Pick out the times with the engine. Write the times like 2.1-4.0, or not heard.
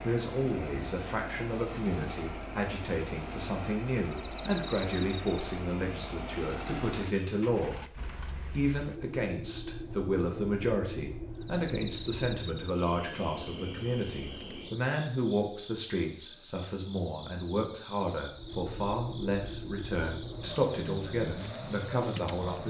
0.0-12.8, 18.3-22.6.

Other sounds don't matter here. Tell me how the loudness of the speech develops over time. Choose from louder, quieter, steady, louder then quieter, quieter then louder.
steady.